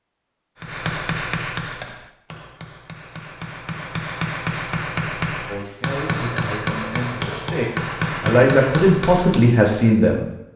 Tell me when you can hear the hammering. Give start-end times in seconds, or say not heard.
0.6-9.6.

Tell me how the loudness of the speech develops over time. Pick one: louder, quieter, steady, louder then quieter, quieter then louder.
louder.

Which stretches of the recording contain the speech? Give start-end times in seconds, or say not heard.
5.5-10.2.